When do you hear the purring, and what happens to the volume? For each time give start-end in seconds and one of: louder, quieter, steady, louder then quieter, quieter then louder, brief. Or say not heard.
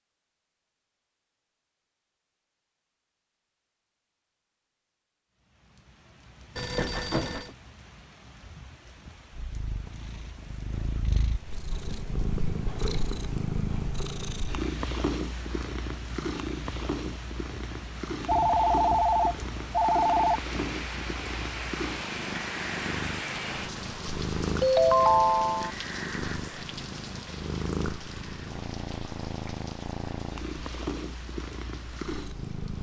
9.3-32.7 steady.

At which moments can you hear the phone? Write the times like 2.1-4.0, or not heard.
6.5-7.5, 18.2-20.4, 24.6-25.7.